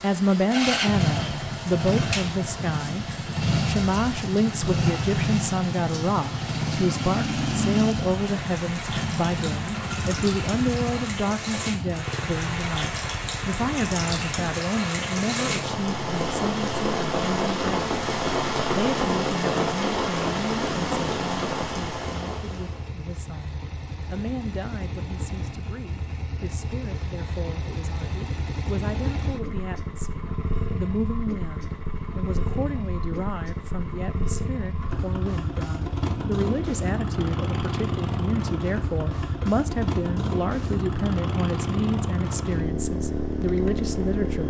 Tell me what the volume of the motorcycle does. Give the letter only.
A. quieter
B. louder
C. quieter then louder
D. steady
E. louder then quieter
C.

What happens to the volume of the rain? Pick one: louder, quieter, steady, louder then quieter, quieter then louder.
louder.